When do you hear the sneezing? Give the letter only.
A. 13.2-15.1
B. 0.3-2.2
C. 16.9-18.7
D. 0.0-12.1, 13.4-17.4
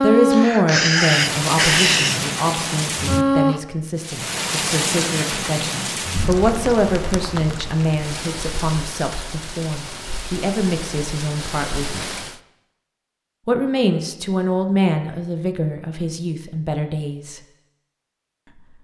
B.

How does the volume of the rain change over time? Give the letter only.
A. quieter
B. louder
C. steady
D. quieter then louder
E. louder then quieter
A.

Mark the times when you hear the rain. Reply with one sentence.
The rain can be heard from 0.0 to 12.4 s.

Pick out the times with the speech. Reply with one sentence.
You can hear the speech from 0.0 to 12.1 s and from 13.4 to 17.4 s.